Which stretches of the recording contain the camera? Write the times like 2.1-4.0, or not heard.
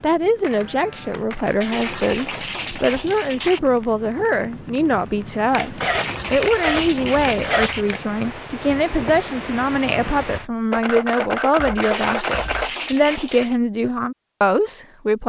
0.4-2.4, 5.5-8.0, 10.7-12.7.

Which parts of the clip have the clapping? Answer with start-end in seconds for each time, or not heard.
1.6-3.6, 5.8-7.8, 11.8-13.6.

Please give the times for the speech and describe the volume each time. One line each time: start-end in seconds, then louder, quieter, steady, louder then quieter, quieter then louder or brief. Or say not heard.
0.0-15.2 steady.